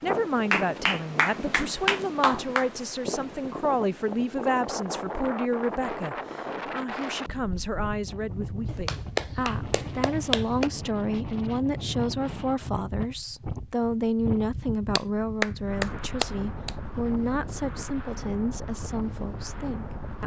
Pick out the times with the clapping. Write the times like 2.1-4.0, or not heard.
0.5-2.7, 8.7-10.7, 14.9-16.7.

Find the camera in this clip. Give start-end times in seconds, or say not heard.
not heard.